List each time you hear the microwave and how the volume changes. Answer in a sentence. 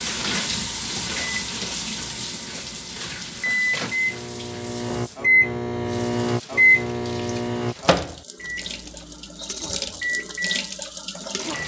The microwave can be heard from 0.0 to 11.6 s, getting louder then quieter.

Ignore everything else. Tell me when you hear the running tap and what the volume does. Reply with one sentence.
The running tap can be heard from 0.0 to 11.6 s, getting quieter then louder.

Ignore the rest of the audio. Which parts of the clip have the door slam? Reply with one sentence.
The door slam can't be heard in this clip.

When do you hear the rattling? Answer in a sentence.
The rattling can be heard from 9.3 to 9.8 s.